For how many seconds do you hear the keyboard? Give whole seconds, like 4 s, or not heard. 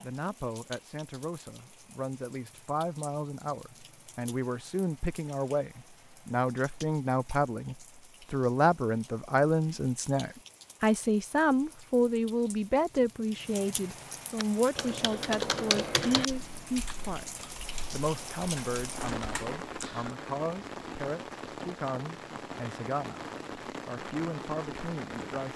6 s.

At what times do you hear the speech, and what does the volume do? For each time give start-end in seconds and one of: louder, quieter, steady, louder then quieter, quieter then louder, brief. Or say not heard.
0.0-25.5 louder then quieter.